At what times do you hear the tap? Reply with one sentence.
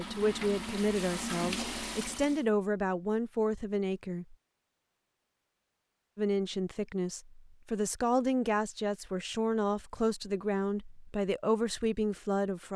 You can hear the tap from 0.0 to 2.5 s.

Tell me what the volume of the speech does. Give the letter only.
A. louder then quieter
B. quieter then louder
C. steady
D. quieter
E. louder
C.